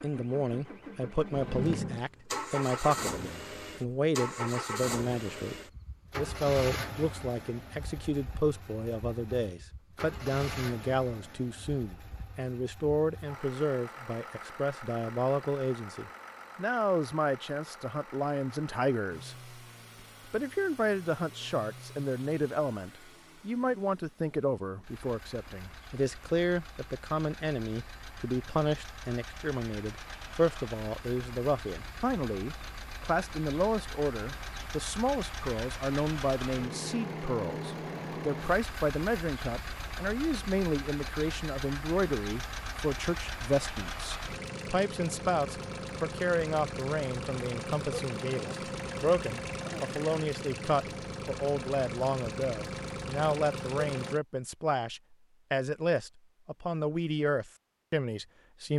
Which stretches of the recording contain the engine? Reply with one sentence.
The engine can be heard from 0.0 to 54.2 s.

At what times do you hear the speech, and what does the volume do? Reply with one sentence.
The speech can be heard from 0.0 to 5.5 s, at a steady volume; from 6.2 to 19.6 s, at a steady volume; and from 20.3 to 58.7 s, at a steady volume.